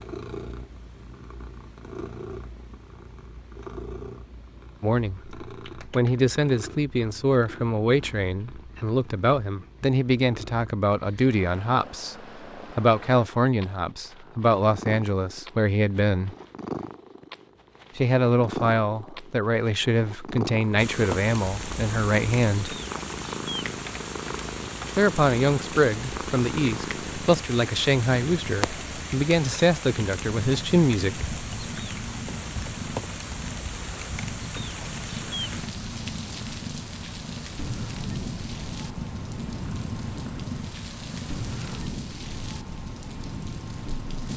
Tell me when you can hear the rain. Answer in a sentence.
The rain can be heard from 20.8 to 44.3 s.